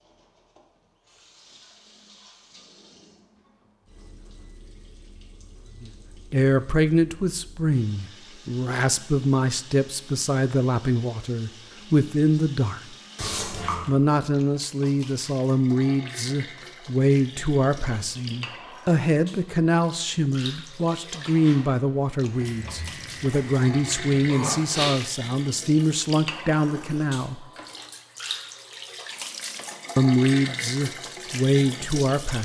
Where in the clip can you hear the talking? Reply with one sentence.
The talking can be heard from 5.8 to 12.8 s, from 13.8 to 27.4 s and from 29.9 to 32.4 s.